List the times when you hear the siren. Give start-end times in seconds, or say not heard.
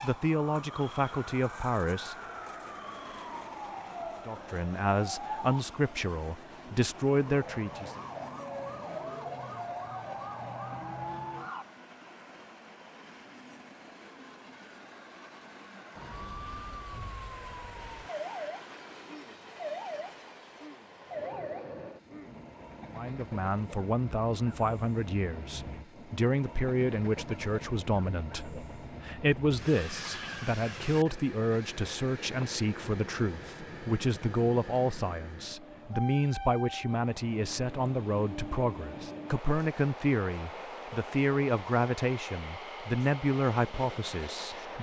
0.0-11.7, 15.9-22.4.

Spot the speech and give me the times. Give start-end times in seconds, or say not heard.
0.0-2.1, 4.2-8.0, 22.9-44.7.